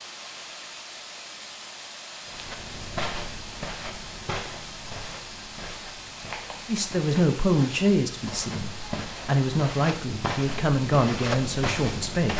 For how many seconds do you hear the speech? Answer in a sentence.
The speech can be heard for 6 seconds in total.